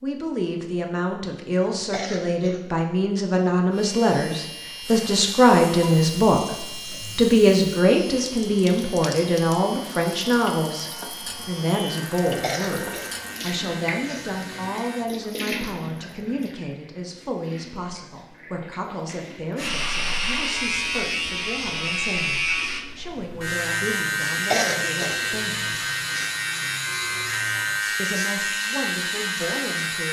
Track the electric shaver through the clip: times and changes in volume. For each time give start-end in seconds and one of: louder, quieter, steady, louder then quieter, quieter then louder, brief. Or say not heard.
3.7-15.1 steady
19.6-30.0 steady.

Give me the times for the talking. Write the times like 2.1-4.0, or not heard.
0.0-25.8, 27.9-30.0.